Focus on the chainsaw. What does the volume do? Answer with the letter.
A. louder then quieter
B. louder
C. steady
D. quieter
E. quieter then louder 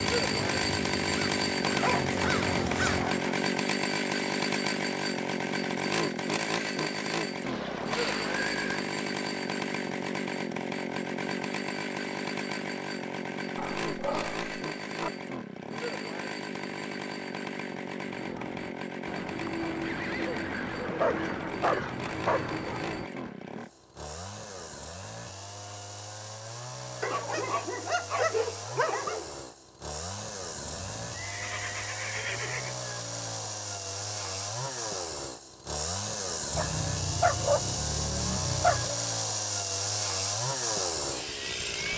E.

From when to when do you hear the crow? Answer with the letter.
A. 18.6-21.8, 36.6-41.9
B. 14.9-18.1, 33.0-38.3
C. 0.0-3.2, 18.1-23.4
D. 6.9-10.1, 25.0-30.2
C.